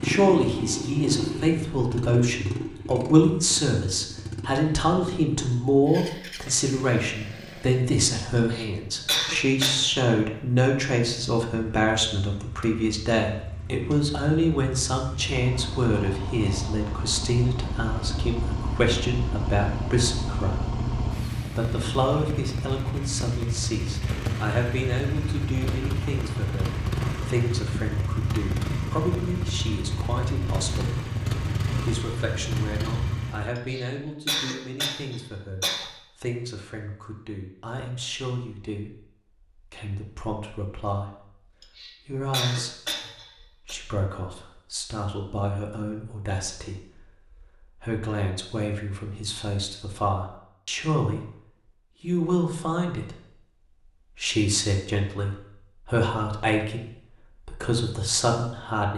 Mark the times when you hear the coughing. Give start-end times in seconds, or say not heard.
8.3-10.1, 33.5-35.9, 41.6-43.8.